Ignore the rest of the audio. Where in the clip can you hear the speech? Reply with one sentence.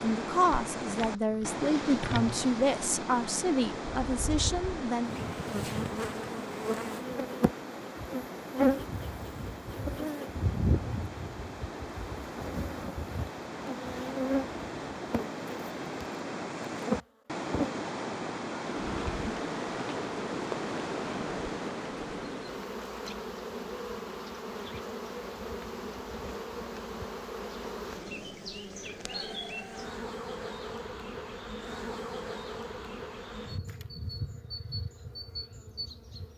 The speech can be heard from 0.0 to 5.2 s.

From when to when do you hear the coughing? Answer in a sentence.
You can't hear the coughing here.